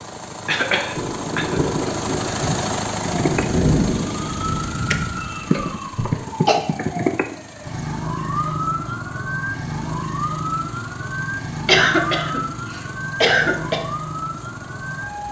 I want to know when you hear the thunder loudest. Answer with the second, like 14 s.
4 s.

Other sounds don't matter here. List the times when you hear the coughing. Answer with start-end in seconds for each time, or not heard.
0.5-1.6, 5.5-6.6, 11.7-13.8.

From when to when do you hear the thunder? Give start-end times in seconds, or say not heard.
0.9-5.7.